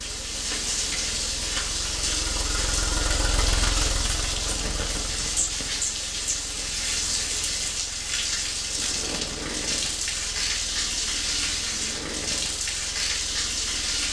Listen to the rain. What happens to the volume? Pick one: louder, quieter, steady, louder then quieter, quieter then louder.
steady.